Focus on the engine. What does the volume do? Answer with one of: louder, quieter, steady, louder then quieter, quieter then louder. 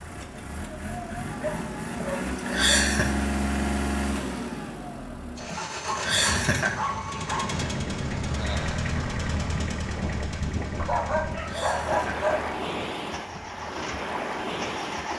quieter.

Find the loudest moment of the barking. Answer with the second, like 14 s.
12 s.